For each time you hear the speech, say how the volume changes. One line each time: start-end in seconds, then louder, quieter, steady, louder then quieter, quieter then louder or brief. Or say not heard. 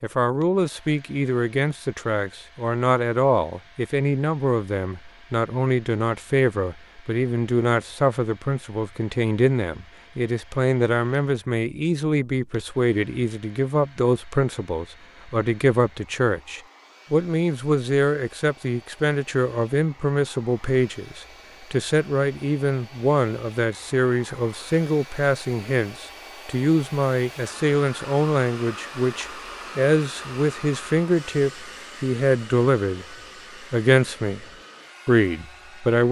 0.0-34.5 steady
35.0-36.0 brief.